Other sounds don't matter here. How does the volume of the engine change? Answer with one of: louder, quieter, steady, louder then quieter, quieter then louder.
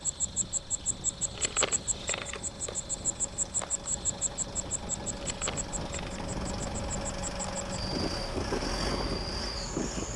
louder.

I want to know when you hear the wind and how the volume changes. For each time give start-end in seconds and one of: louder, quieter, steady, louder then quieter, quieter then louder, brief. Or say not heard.
0.1-10.1 louder.